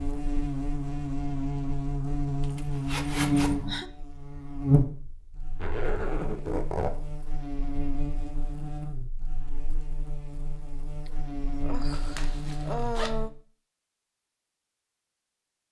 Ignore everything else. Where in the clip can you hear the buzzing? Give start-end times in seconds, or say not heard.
0.0-13.3.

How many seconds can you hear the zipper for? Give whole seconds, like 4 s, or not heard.
4 s.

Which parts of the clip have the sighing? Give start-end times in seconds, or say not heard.
3.4-3.9, 11.1-13.3.